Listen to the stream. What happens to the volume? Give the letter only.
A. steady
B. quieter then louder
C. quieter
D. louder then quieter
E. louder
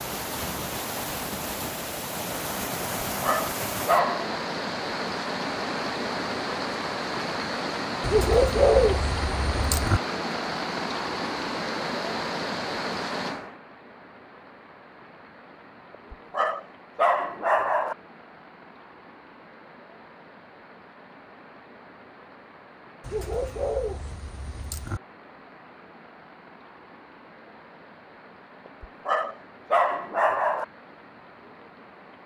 C.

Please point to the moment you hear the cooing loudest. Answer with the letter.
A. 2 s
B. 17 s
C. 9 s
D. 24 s
C.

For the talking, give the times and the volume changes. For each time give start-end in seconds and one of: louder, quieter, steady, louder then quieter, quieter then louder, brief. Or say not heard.
not heard.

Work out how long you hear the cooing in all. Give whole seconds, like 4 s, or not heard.
4 s.